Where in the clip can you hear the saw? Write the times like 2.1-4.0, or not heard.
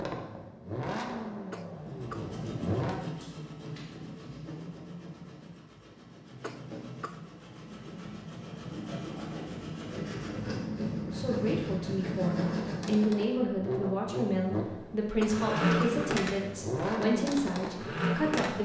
1.8-13.1.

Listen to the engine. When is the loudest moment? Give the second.
16 s.